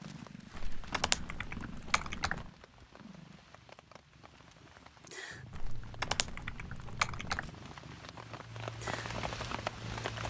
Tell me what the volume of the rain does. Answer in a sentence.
The loudness of the rain goes up.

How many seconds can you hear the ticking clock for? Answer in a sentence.
You can't hear the ticking clock here.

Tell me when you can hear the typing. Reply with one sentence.
The typing can be heard from 0.9 to 2.5 s and from 6.0 to 7.5 s.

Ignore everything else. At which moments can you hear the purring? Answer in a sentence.
You can hear the purring from 0.0 to 10.2 s.